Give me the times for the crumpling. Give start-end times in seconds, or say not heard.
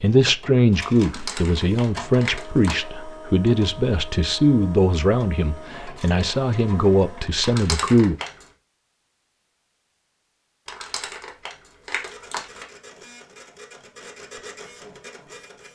1.0-2.8, 7.4-8.4, 10.7-12.7.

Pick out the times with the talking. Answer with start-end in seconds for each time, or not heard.
0.0-8.2.